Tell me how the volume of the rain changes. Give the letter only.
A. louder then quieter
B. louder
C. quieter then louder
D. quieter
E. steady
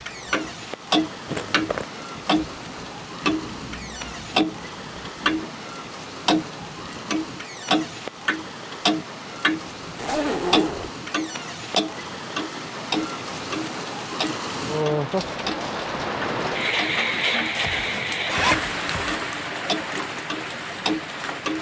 B.